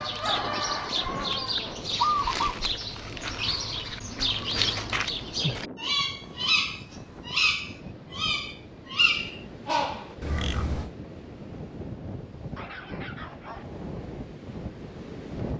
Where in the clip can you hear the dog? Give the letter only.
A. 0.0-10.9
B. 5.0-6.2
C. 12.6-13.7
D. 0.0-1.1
C.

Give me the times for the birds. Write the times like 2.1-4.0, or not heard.
0.0-10.9.